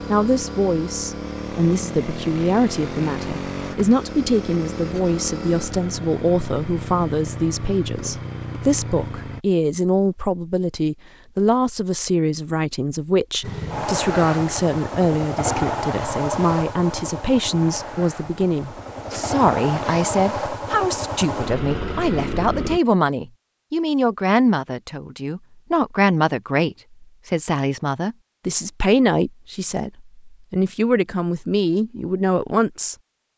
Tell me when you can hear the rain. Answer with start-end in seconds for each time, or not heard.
not heard.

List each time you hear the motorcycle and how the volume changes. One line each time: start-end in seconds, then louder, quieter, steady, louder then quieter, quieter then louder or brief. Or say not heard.
0.0-9.4 steady
13.4-22.8 quieter then louder.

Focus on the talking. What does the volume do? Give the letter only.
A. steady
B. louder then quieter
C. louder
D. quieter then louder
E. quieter
A.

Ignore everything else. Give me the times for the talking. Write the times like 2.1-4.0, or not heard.
0.1-33.0.